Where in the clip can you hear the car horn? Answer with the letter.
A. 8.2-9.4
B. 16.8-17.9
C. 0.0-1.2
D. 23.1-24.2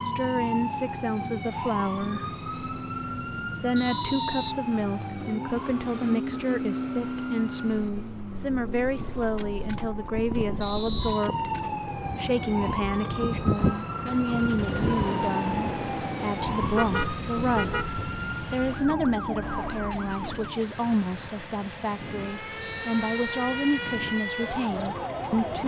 B.